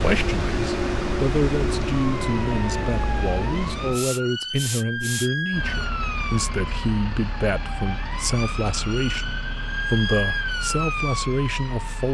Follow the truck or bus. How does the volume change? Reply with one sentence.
The volume of the truck or bus goes down.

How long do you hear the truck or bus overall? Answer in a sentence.
You can hear the truck or bus for 12 seconds altogether.